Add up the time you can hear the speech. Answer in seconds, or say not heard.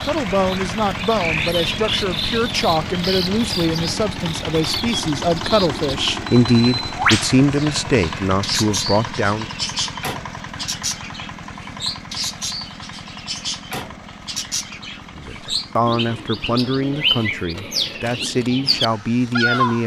14 s.